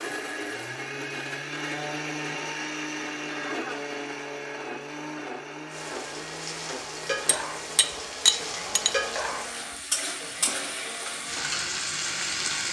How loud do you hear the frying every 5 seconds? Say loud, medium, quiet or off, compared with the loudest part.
off, loud, loud.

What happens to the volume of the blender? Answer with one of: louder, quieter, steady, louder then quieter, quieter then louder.
quieter.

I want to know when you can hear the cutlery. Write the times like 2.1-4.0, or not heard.
7.2-8.9.